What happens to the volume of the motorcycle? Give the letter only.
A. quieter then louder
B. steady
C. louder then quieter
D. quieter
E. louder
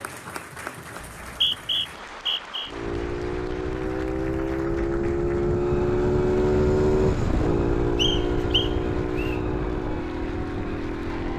C.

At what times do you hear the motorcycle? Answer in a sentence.
The motorcycle can be heard from 2.6 to 11.3 s.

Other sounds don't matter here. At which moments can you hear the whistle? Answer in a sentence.
The whistle can be heard from 1.0 to 2.7 s and from 8.0 to 9.4 s.